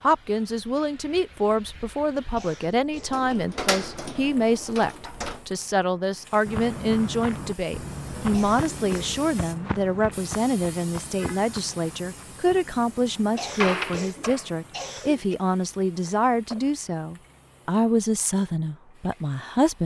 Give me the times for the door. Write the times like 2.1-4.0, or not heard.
2.9-5.5, 13.4-14.5.